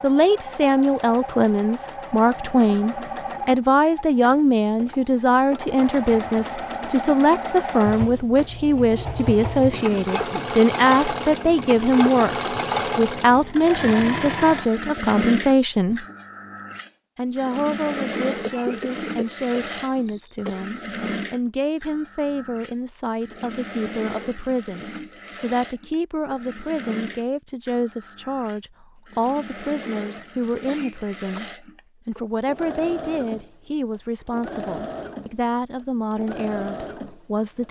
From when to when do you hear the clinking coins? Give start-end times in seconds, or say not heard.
not heard.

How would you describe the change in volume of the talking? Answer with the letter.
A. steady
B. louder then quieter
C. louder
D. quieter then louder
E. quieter
E.